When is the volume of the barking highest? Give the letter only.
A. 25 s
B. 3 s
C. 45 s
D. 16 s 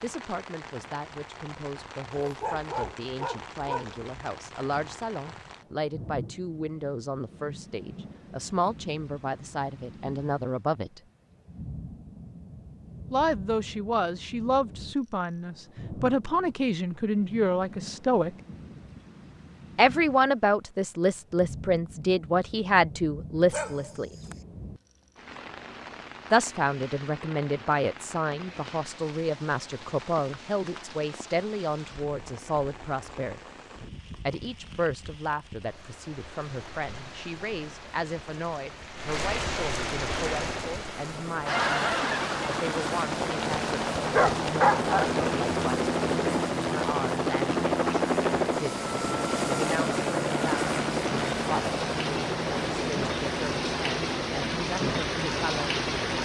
C.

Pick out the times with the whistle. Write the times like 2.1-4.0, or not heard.
not heard.